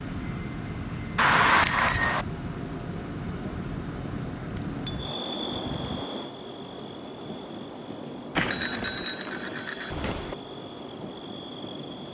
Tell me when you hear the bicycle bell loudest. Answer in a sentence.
The loudest moment of the bicycle bell is at 2 seconds.